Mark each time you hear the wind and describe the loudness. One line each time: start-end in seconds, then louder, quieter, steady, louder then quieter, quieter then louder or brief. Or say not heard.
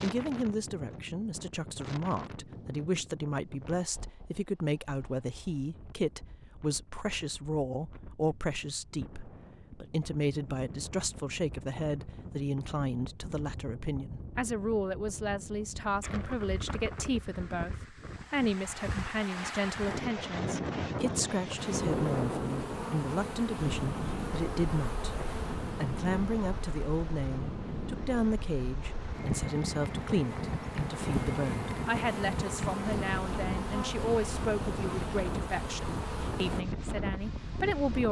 0.0-38.0 louder.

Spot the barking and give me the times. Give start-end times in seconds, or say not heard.
not heard.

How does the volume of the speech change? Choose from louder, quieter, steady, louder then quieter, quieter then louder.
steady.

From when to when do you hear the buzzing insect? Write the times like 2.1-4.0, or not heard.
21.6-36.6.